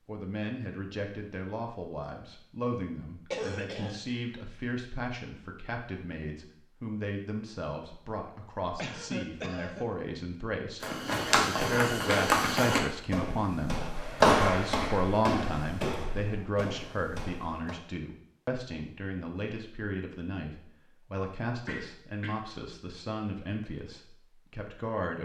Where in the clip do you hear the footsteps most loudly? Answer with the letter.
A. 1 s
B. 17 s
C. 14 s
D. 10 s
C.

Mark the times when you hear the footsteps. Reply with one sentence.
The footsteps can be heard from 10.8 to 17.8 s.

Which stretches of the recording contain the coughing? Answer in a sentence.
The coughing can be heard from 3.3 to 4.0 s, from 8.8 to 9.8 s and from 21.6 to 22.6 s.